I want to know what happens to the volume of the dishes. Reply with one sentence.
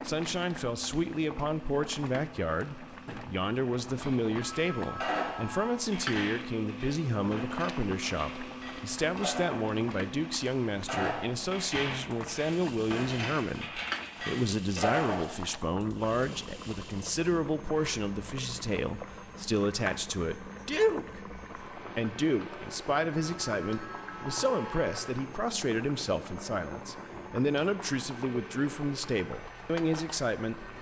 The loudness of the dishes goes down, then up.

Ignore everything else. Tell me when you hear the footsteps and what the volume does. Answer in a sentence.
The footsteps can't be heard in this clip.